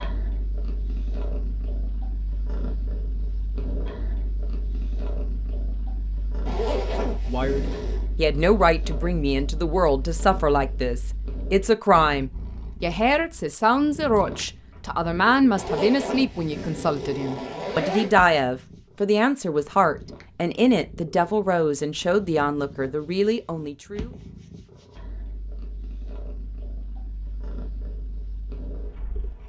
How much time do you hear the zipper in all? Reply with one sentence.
The zipper can be heard for 4 seconds in total.